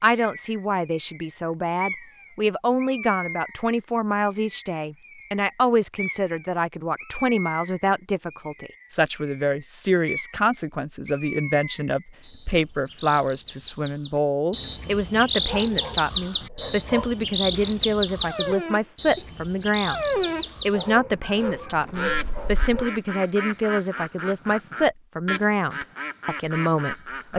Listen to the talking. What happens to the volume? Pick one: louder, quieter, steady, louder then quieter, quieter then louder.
steady.